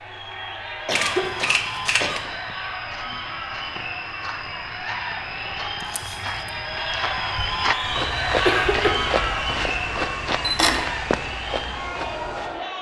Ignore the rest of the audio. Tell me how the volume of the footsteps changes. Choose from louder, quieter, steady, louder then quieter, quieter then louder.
louder.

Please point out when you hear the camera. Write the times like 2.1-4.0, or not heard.
0.9-2.2, 5.8-6.5, 10.4-10.9.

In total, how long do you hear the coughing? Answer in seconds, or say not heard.
2 s.